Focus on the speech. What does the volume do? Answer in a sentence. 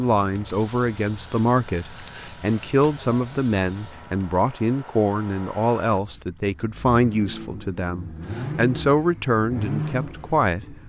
The loudness of the speech stays about the same.